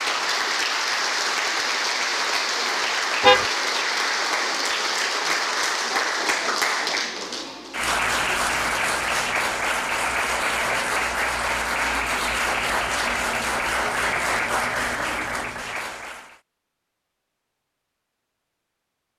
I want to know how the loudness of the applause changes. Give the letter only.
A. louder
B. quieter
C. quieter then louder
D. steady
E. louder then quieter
D.